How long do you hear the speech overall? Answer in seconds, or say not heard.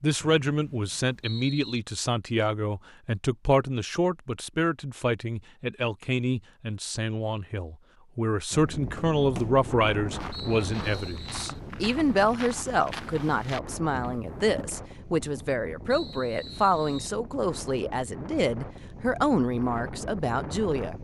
21 s.